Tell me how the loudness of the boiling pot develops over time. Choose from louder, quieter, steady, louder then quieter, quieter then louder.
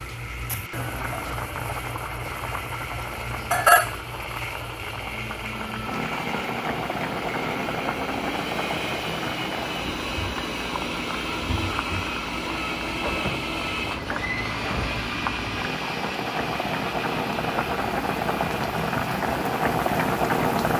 quieter then louder.